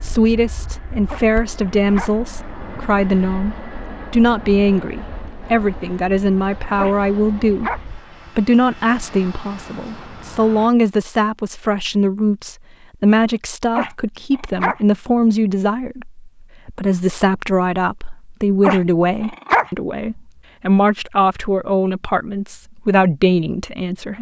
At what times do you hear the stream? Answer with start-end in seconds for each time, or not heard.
not heard.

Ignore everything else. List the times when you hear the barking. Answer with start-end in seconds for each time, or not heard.
1.1-2.1, 6.8-7.8, 13.8-14.8, 18.6-19.7.